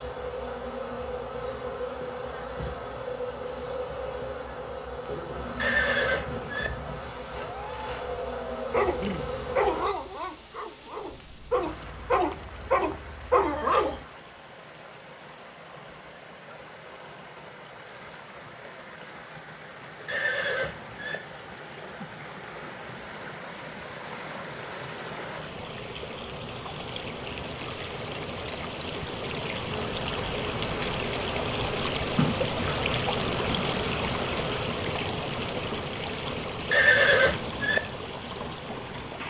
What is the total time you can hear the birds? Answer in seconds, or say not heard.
not heard.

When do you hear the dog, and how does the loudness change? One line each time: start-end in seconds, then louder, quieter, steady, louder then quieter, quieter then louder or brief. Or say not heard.
8.7-14.1 quieter then louder.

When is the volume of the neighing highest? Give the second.
37 s.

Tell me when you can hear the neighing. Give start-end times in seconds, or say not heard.
5.5-6.7, 20.1-21.2, 36.7-37.8.